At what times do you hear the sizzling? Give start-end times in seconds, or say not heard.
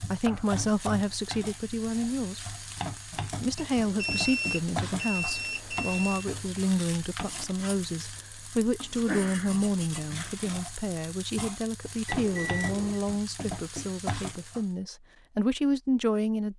0.0-14.8.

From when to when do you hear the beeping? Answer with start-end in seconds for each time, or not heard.
3.8-6.2, 12.1-13.0.